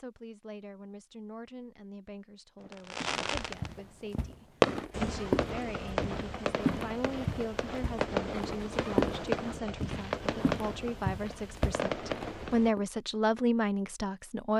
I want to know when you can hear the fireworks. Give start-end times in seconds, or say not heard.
2.6-12.8.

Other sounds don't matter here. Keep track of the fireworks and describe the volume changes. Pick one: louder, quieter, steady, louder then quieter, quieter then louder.
quieter.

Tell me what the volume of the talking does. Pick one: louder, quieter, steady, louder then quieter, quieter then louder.
louder.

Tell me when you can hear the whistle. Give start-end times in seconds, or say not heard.
not heard.